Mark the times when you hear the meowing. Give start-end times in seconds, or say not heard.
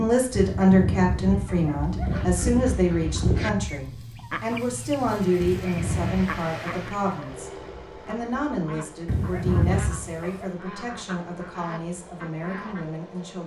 not heard.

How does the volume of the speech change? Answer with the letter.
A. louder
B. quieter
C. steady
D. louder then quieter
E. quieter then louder
B.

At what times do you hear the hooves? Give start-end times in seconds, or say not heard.
0.0-3.9.